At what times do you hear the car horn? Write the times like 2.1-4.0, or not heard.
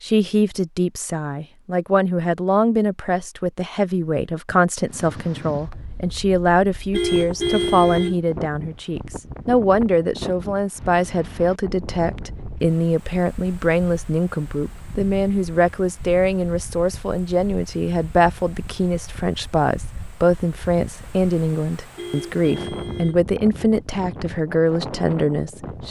6.9-8.2, 21.9-23.2.